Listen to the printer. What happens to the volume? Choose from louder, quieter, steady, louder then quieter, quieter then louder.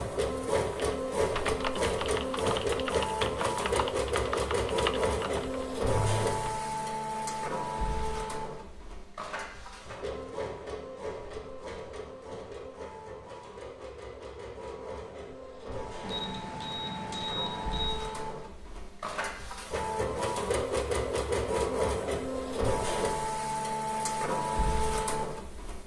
quieter then louder.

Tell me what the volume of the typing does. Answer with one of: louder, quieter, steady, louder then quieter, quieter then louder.
steady.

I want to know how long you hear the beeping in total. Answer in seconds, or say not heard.
2 s.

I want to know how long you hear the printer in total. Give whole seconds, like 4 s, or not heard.
26 s.